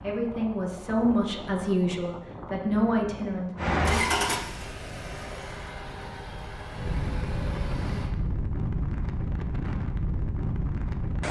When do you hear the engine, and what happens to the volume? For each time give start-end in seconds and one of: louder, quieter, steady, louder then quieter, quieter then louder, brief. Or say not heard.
3.5-8.2 quieter.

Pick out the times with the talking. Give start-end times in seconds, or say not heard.
0.0-3.5.